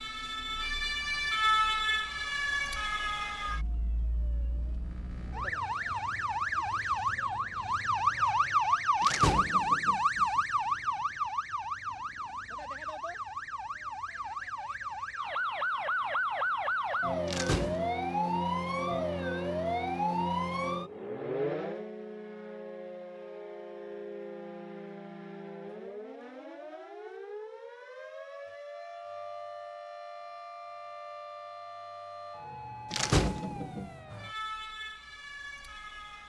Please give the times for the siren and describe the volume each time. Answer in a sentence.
You can hear the siren from 0.0 to 36.2 s, getting quieter.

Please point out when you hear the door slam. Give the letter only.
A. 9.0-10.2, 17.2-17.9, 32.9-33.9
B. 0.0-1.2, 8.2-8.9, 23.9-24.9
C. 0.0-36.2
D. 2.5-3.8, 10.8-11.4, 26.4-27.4
A.